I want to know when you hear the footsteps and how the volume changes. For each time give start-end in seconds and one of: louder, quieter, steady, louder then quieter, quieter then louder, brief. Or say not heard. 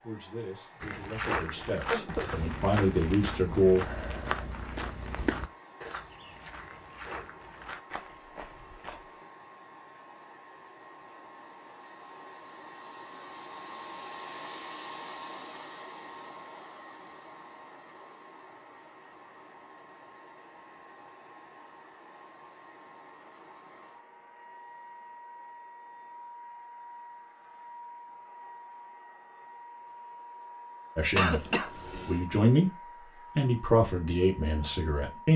0.8-9.2 quieter.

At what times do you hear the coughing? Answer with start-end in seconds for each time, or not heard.
1.7-2.4, 31.1-32.2.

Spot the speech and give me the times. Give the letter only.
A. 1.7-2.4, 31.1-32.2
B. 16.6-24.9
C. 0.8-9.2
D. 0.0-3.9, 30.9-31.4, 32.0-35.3
D.